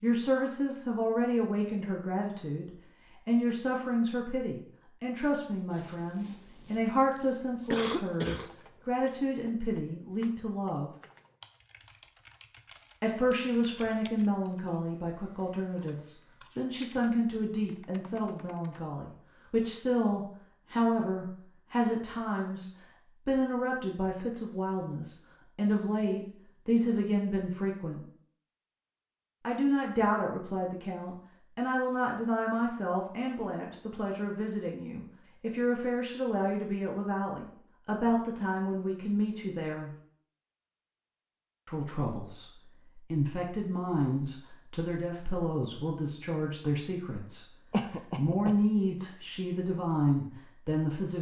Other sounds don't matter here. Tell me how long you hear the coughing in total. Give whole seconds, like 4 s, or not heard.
2 s.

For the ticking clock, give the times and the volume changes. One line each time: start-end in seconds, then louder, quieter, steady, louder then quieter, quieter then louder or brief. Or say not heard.
not heard.